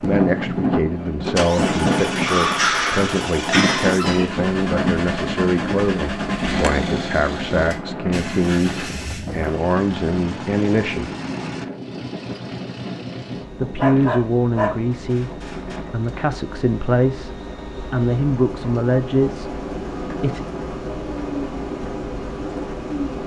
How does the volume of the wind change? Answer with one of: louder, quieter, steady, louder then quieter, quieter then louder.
quieter.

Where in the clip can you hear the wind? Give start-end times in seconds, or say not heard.
0.0-16.1.